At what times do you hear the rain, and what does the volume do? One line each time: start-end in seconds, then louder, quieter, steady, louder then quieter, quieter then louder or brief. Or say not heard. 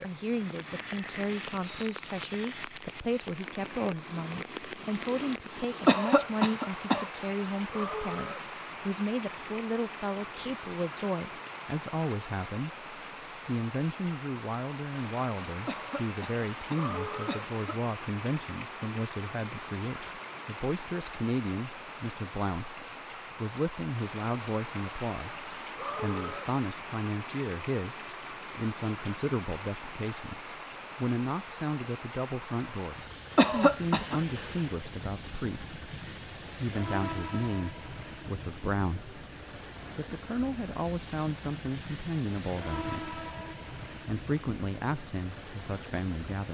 0.0-46.4 steady.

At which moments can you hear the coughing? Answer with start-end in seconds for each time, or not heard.
5.8-7.1, 15.7-17.8, 33.4-34.2.